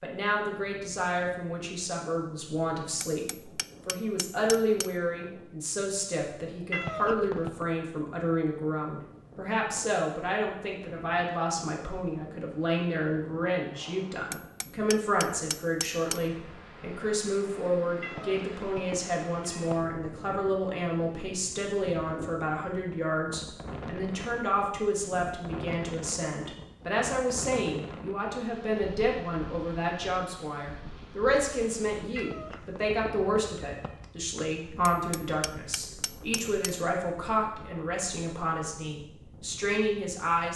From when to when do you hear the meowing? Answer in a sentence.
You can hear the meowing from 6.7 to 7.7 s, from 18.0 to 19.9 s and from 32.1 to 34.0 s.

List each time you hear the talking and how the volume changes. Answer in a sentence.
The talking can be heard from 0.0 to 40.5 s, at a steady volume.